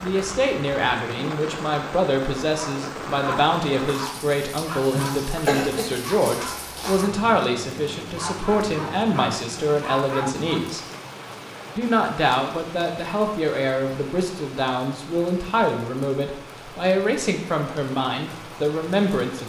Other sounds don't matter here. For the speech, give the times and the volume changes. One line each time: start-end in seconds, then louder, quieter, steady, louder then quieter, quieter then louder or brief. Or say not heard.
0.0-10.8 steady
11.8-19.4 steady.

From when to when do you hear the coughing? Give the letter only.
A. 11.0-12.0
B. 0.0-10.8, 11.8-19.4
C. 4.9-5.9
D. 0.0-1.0
C.